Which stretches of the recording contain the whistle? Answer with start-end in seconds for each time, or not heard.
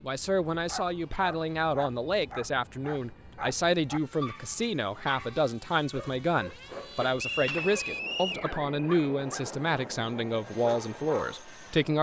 7.2-8.4.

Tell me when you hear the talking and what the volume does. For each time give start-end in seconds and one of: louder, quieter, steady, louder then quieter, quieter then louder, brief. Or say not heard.
0.0-11.9 steady.